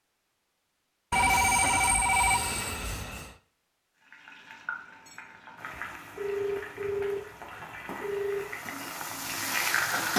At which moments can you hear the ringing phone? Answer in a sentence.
The ringing phone can be heard from 1.1 to 3.3 s and from 6.2 to 8.4 s.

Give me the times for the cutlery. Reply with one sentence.
You can't hear the cutlery here.